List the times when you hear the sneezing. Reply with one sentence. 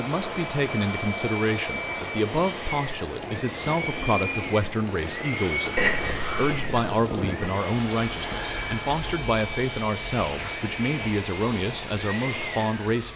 You can't hear the sneezing here.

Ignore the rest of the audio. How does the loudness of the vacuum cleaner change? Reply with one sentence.
The loudness of the vacuum cleaner stays about the same.